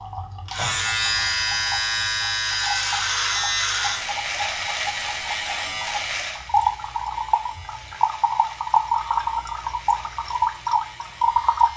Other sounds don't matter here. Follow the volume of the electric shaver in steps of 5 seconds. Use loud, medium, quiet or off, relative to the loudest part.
loud, medium, quiet.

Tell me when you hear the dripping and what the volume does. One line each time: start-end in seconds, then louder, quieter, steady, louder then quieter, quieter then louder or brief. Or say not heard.
0.0-11.7 louder.